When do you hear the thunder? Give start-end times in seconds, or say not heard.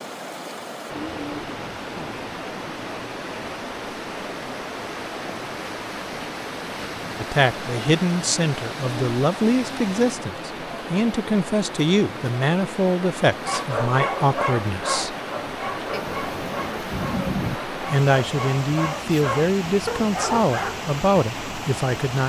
15.9-17.6.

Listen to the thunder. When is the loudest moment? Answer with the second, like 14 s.
17 s.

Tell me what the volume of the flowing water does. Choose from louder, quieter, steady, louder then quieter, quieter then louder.
steady.